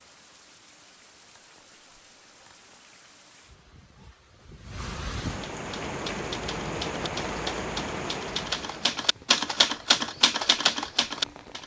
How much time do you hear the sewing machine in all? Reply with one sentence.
The sewing machine can't be heard in this clip.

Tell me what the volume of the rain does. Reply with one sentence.
The loudness of the rain goes up, then down.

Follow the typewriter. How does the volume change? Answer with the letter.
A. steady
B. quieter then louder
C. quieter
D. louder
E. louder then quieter
D.